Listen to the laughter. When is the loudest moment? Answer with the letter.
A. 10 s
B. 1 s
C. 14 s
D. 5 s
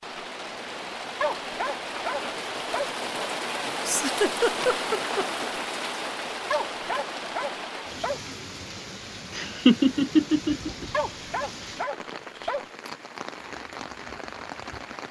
A.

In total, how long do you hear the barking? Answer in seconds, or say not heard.
5 s.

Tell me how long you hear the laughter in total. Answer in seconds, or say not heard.
3 s.